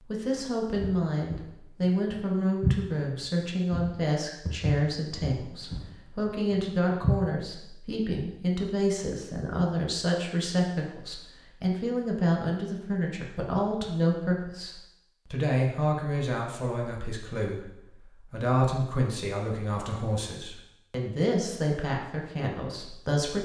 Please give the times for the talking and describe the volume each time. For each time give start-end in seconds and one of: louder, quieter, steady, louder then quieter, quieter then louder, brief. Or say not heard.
0.0-23.4 steady.